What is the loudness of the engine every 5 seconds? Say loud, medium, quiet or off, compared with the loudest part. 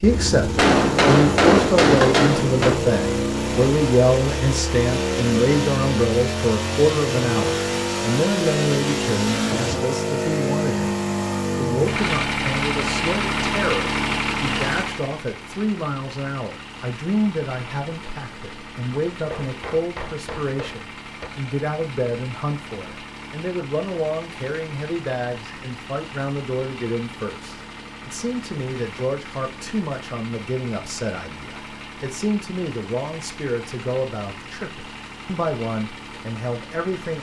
loud, loud, loud, quiet, quiet, quiet, quiet, quiet.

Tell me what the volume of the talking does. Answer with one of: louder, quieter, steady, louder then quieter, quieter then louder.
quieter.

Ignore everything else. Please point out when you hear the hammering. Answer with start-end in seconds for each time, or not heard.
0.6-2.8, 19.3-21.3.